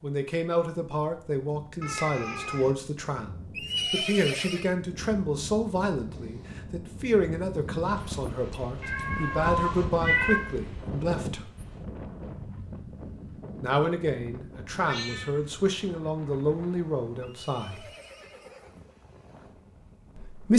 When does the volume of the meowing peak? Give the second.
10 s.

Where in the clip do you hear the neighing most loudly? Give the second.
4 s.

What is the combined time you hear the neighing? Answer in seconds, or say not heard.
3 s.